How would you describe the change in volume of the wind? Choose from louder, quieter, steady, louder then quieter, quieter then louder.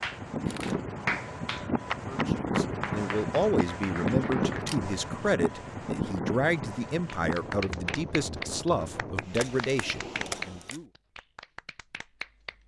quieter.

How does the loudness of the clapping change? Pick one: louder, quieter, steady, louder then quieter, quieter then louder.
quieter.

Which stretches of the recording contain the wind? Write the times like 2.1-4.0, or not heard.
0.0-10.8.